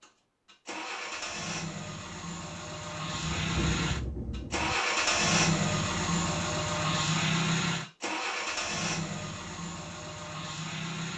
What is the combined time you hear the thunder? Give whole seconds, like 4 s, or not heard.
2 s.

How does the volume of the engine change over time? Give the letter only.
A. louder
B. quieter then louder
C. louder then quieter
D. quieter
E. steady
C.